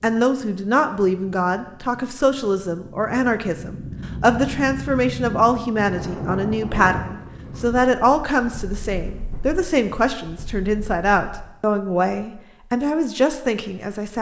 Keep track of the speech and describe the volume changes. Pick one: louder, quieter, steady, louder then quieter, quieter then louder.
steady.